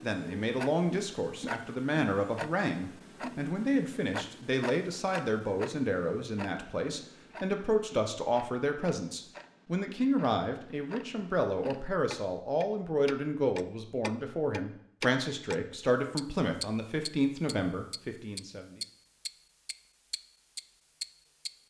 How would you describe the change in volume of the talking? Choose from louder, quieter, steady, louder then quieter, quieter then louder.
steady.